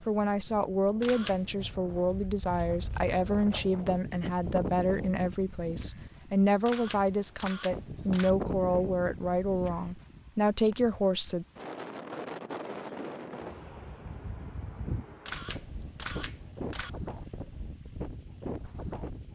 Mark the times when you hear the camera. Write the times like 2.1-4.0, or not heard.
1.0-1.5, 6.7-8.3, 15.2-16.9.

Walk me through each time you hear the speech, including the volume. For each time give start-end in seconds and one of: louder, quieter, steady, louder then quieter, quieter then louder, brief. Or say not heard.
0.1-11.4 steady.